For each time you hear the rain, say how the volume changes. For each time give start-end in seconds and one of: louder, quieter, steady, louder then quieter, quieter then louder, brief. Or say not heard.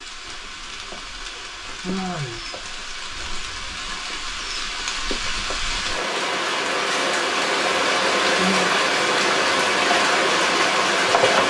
0.0-11.4 louder.